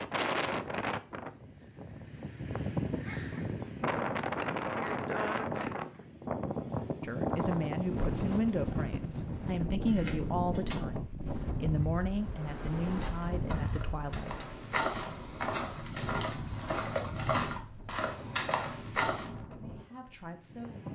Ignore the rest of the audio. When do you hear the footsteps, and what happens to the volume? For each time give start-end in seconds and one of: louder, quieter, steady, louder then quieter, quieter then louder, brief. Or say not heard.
12.8-19.4 louder.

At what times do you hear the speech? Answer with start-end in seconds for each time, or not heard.
7.0-14.4, 19.4-20.9.